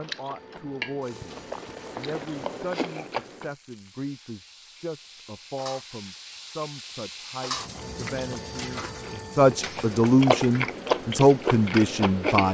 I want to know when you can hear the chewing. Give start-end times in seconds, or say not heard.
0.0-3.5, 7.7-12.4.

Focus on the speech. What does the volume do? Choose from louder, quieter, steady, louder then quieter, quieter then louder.
louder.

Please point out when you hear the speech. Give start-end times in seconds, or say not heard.
0.0-12.4.